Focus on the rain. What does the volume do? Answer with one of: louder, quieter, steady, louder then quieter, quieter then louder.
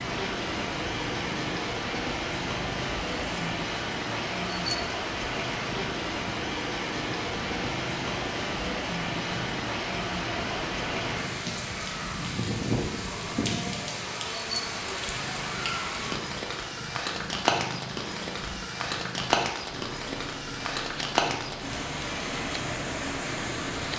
steady.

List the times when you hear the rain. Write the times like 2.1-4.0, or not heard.
0.0-23.9.